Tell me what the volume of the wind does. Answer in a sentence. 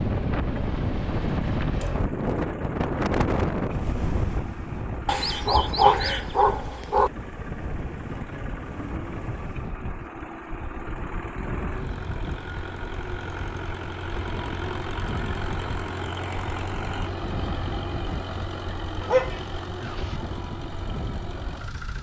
The loudness of the wind goes down.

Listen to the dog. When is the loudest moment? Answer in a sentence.
The loudest moment of the dog is at 6 seconds.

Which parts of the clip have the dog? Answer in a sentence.
You can hear the dog from 5.0 to 7.1 s and from 19.0 to 20.2 s.